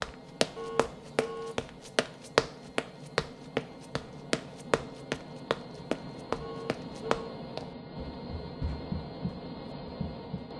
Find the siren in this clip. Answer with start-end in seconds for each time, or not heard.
not heard.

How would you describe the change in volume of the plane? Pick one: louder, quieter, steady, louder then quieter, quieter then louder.
louder.